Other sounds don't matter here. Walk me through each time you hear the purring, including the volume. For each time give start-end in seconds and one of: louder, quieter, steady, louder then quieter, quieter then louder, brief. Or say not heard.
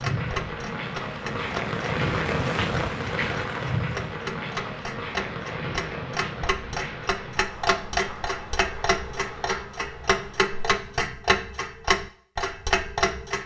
not heard.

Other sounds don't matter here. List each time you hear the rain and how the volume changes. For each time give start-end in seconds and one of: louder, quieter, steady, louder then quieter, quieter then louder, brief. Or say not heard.
0.0-10.7 quieter.